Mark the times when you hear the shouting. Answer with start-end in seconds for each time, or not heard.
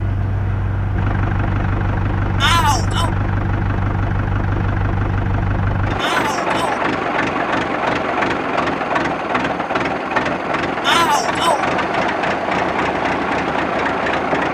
2.4-3.1, 6.0-6.8, 10.8-11.7.